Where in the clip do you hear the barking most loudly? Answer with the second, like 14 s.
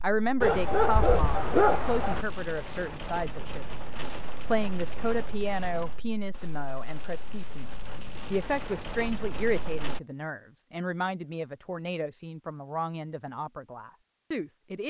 2 s.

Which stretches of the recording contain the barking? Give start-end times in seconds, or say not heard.
0.4-2.2.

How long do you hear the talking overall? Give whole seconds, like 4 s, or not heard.
15 s.